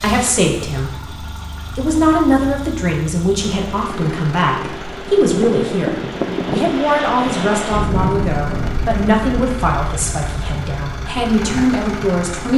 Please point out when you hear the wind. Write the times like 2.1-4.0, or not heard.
3.4-12.5.